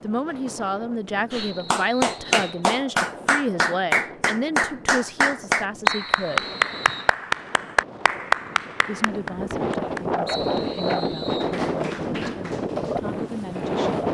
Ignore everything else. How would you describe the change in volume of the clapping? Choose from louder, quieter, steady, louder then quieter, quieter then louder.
quieter.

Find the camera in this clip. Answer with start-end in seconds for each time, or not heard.
not heard.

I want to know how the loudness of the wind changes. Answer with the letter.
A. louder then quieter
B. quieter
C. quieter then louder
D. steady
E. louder
E.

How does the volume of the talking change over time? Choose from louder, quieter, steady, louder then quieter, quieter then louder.
quieter.